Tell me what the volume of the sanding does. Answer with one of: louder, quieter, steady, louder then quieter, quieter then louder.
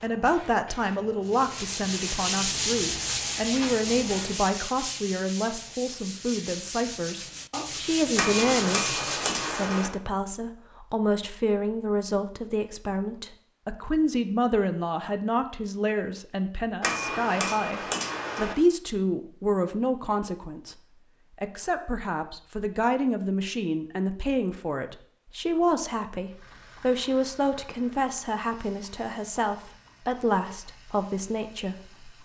quieter then louder.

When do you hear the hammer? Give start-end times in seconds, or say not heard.
8.2-9.9, 16.8-18.6.